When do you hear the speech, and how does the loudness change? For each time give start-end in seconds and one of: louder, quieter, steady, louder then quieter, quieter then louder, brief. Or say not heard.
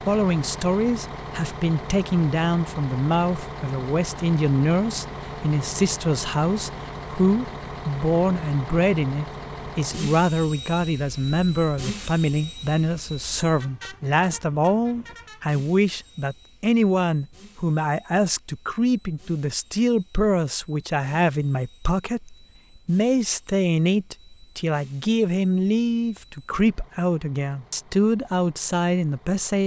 0.1-29.6 steady.